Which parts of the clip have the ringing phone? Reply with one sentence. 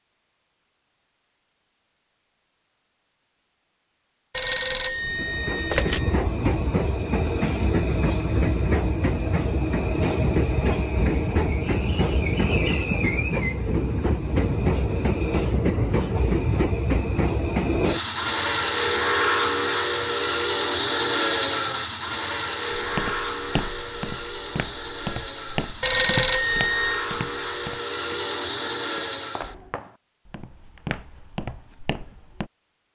You can hear the ringing phone from 4.3 to 6.2 s and from 25.8 to 27.1 s.